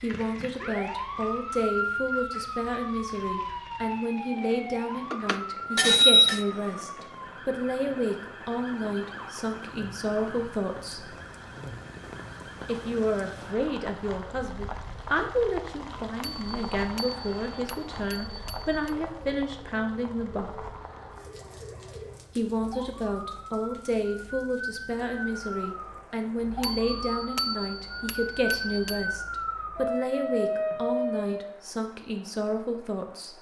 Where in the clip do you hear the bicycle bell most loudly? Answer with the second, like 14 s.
6 s.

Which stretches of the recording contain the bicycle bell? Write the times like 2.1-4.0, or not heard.
5.1-6.5, 16.2-18.9, 26.6-29.1.